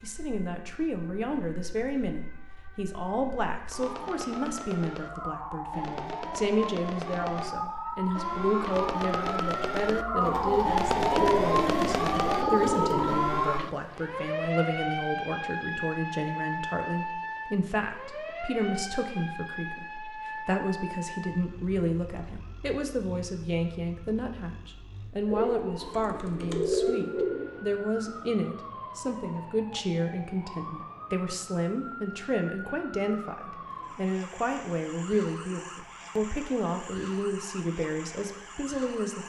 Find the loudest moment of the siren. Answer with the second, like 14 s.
11 s.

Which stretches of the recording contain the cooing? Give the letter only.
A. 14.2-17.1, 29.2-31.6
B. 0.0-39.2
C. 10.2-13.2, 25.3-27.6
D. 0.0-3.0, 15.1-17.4
C.